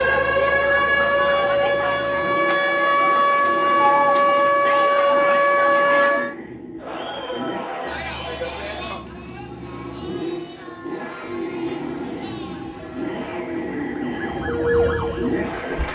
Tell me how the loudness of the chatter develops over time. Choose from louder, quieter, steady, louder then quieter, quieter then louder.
quieter.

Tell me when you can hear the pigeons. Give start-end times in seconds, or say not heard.
not heard.